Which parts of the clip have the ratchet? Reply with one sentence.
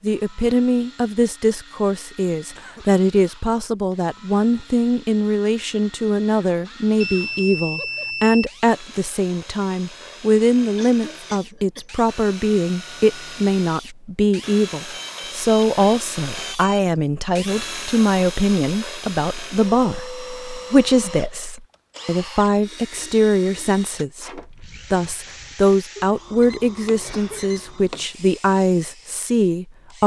You can't hear the ratchet here.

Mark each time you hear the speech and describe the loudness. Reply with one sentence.
You can hear the speech from 0.0 to 30.0 s, at a steady volume.